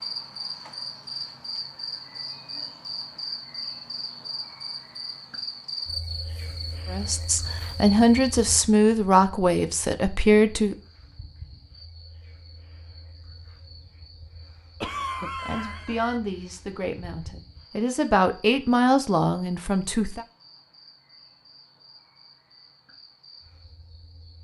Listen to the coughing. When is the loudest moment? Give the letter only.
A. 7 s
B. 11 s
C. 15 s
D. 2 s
C.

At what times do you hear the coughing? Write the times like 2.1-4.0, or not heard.
14.8-16.2.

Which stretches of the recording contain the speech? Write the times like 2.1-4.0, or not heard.
6.9-10.8, 15.4-20.2.